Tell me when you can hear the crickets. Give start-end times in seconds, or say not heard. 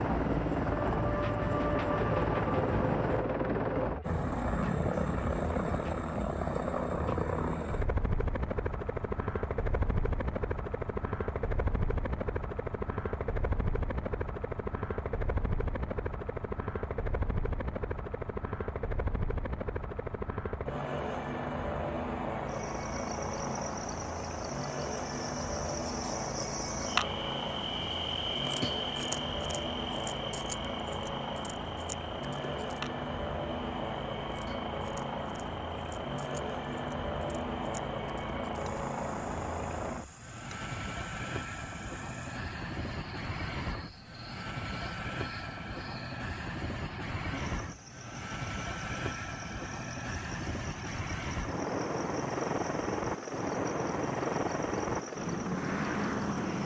22.4-56.6.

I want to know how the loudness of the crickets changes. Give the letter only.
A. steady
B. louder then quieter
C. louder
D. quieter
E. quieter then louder
D.